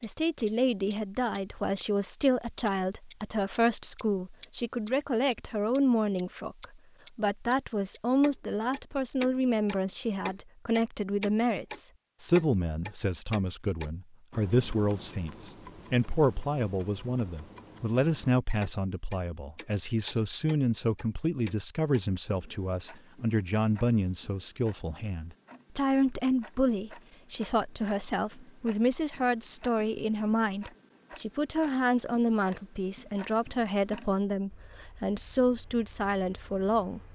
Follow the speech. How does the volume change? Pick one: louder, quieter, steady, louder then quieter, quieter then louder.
steady.